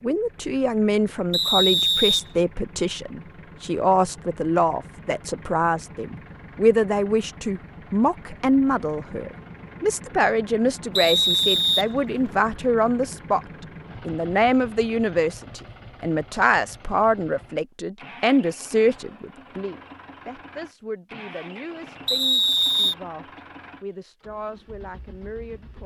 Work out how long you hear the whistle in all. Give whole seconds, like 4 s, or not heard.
3 s.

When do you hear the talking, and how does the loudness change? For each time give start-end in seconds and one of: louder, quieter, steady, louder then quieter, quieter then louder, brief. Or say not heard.
0.0-13.4 steady
14.1-25.8 quieter.